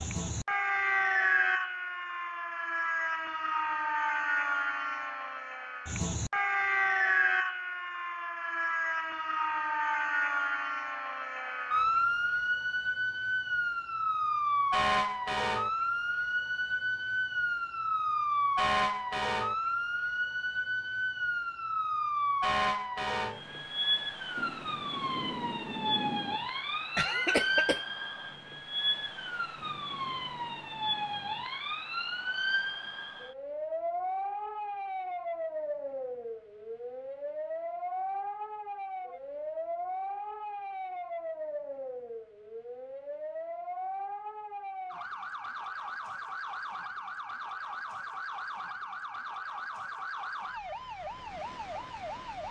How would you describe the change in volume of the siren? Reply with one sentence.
The volume of the siren goes down.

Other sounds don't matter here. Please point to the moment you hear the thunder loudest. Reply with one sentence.
The volume of the thunder peaks at 26 seconds.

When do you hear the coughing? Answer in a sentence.
You can hear the coughing from 26.9 to 27.8 s.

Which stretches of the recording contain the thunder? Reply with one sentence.
The thunder can be heard from 24.4 to 26.4 s.